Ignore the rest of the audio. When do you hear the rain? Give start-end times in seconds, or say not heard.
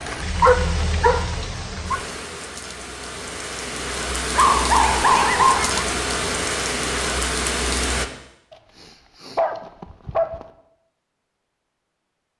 0.0-8.1.